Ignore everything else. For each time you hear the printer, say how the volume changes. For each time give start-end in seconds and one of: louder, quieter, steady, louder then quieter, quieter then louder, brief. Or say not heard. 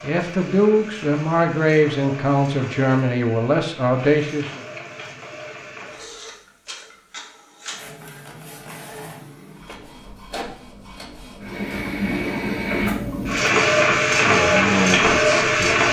0.0-15.8 louder.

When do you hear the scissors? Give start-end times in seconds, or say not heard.
not heard.